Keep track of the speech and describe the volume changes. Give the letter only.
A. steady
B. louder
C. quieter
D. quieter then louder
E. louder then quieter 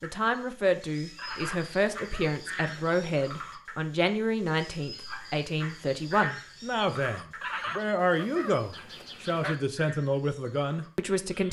A.